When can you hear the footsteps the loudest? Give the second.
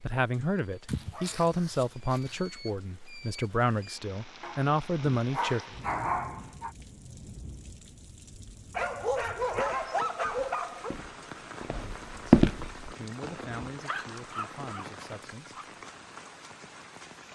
12 s.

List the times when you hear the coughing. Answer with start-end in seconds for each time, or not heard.
not heard.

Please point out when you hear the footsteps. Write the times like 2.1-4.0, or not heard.
9.4-12.9.